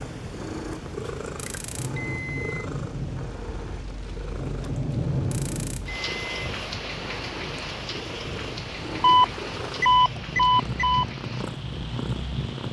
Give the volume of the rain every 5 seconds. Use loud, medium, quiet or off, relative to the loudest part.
loud, loud, medium.